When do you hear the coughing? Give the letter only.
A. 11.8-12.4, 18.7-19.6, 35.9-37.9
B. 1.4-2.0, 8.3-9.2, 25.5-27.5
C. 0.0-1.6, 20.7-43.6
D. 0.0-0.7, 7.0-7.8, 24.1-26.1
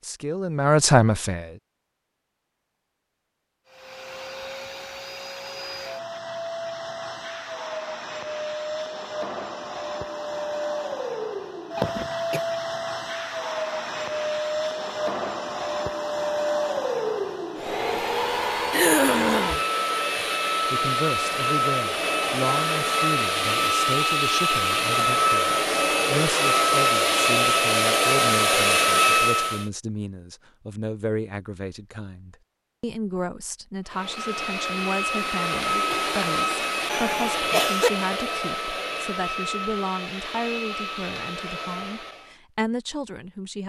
A.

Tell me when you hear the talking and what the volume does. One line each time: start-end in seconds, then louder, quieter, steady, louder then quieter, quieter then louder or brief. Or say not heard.
0.0-1.6 brief
20.7-43.6 steady.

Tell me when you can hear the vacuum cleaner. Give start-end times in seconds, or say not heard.
3.6-29.6, 33.9-42.4.